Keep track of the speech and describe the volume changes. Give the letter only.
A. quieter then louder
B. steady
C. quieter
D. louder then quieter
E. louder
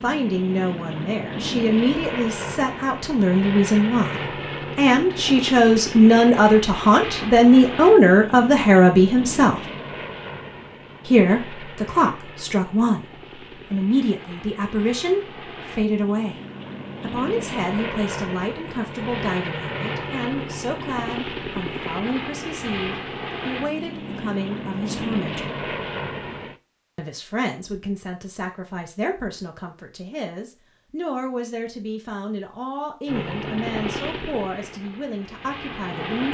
C.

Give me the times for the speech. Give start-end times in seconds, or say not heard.
0.0-9.7, 11.1-16.4, 17.0-25.6, 26.9-36.2.